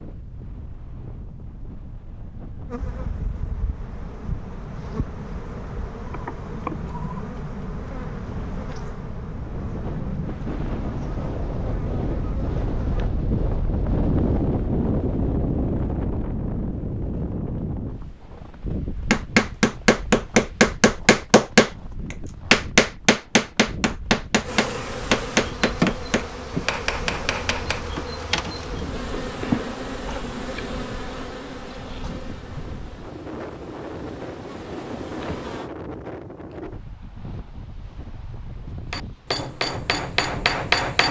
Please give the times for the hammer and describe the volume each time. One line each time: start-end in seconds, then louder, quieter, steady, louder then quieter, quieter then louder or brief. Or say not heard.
19.1-27.9 quieter
38.9-41.0 brief.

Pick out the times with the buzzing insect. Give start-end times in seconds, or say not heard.
2.7-13.2, 24.4-35.7.